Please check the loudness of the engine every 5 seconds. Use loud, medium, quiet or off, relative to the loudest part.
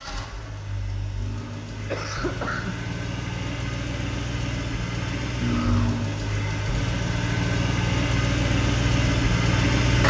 medium, loud.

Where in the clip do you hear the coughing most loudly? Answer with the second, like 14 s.
6 s.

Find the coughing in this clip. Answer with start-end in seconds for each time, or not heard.
1.1-2.9, 5.4-6.2.